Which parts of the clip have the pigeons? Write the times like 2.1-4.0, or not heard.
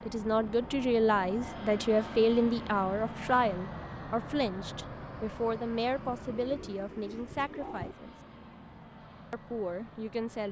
5.9-8.0.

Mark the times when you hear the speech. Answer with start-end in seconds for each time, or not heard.
0.0-8.1, 9.3-10.4.